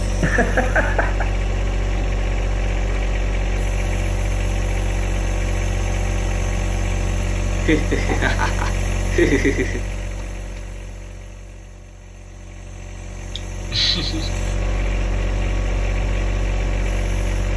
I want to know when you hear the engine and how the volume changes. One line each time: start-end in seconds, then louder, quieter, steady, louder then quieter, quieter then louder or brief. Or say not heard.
0.0-17.5 quieter then louder.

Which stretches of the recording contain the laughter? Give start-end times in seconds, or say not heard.
0.2-1.3, 7.7-9.8, 13.3-14.3.